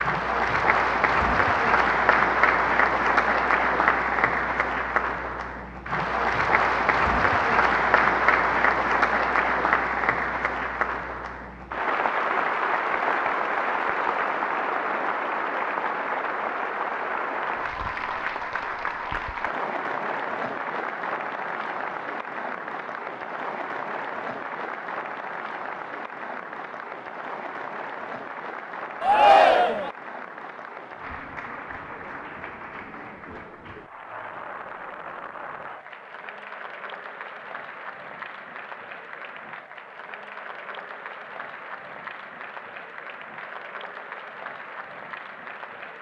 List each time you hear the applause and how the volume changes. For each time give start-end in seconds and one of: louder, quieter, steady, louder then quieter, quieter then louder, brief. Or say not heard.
0.0-45.9 quieter.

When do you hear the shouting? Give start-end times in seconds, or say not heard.
29.0-29.9.